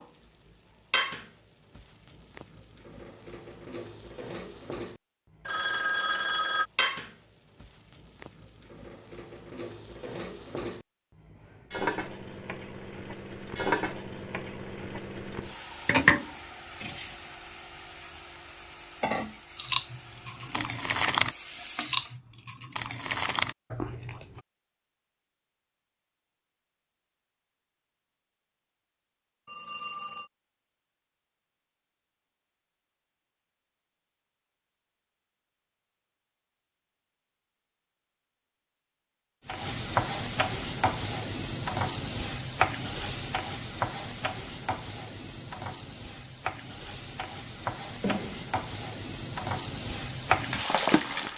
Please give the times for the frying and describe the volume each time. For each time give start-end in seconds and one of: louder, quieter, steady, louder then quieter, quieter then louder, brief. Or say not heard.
0.0-22.2 louder then quieter
39.5-51.3 quieter then louder.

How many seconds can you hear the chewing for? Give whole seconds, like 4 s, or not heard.
5 s.